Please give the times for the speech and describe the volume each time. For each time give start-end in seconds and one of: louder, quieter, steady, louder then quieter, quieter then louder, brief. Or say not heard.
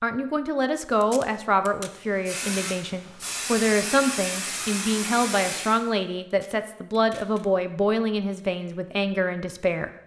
0.0-9.9 steady.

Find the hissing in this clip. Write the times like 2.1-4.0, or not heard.
2.0-5.8.